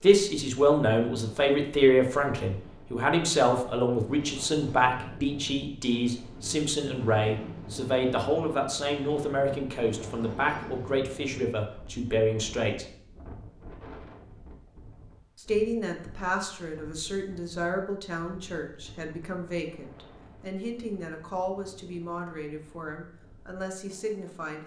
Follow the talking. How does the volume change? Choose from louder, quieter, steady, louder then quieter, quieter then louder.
quieter.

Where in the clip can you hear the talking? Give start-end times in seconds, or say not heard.
0.0-12.8, 15.3-24.6.